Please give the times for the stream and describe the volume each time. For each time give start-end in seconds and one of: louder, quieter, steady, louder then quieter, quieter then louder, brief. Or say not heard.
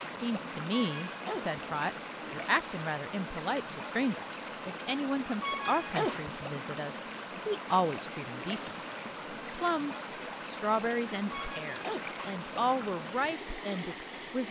0.0-14.4 steady.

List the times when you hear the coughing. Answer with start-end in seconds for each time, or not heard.
0.7-1.6, 5.4-6.3, 11.3-12.1.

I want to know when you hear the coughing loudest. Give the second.
6 s.